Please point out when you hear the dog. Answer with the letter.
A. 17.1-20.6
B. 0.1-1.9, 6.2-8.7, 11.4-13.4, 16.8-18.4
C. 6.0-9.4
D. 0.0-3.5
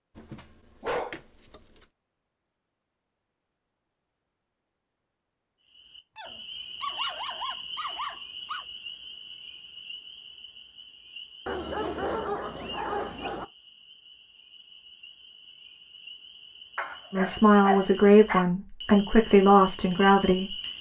B.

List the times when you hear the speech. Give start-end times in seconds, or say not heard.
17.1-20.6.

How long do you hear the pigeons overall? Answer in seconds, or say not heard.
not heard.